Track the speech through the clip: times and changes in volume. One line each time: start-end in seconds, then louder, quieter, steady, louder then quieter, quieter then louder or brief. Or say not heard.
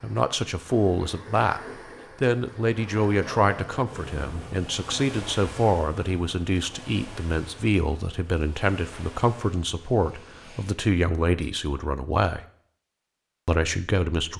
0.0-1.6 brief
2.2-12.4 steady
13.4-14.3 brief.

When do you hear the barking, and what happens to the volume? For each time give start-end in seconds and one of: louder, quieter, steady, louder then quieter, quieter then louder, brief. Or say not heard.
not heard.